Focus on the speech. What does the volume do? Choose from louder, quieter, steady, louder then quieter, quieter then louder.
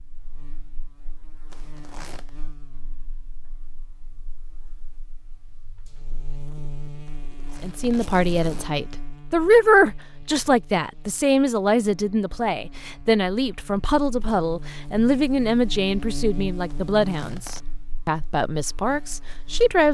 quieter.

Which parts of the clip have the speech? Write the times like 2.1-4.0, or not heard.
7.6-19.8.